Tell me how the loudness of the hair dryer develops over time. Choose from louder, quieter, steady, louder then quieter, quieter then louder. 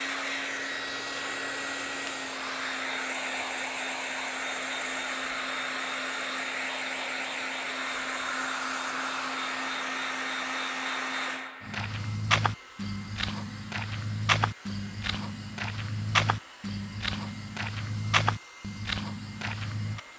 quieter.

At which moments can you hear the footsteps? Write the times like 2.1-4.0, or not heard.
11.6-20.0.